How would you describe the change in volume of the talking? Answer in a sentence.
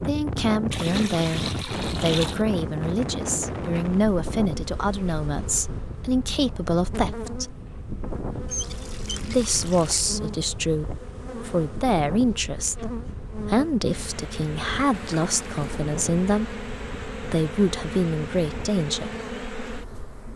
The loudness of the talking stays about the same.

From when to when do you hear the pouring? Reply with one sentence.
The pouring can be heard from 0.7 to 2.4 s, from 8.4 to 10.1 s and from 14.9 to 15.8 s.